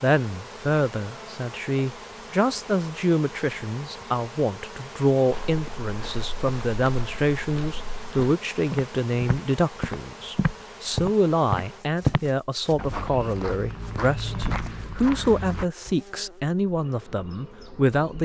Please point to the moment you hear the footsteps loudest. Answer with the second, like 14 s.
12 s.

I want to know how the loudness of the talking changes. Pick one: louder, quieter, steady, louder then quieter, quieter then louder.
steady.